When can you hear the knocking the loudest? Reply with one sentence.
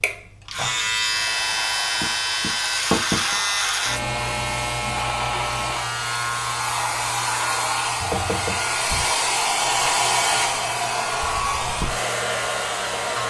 The volume of the knocking peaks at 3 seconds.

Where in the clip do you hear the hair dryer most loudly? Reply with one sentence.
The loudest moment of the hair dryer is at 10 seconds.